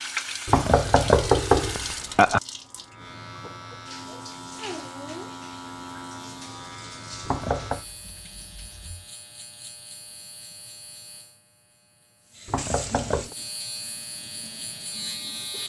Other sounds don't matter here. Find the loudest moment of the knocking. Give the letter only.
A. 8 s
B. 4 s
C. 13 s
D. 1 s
D.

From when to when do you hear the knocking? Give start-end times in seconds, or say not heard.
0.5-2.4, 7.2-7.8, 12.4-13.3.